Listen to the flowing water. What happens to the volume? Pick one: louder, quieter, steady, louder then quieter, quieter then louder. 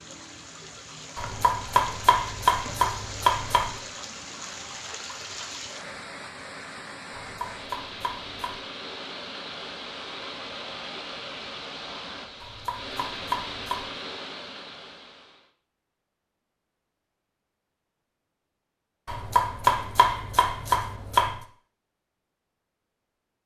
steady.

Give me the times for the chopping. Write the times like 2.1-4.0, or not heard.
1.1-3.8, 7.2-8.6, 12.4-13.9, 19.1-21.4.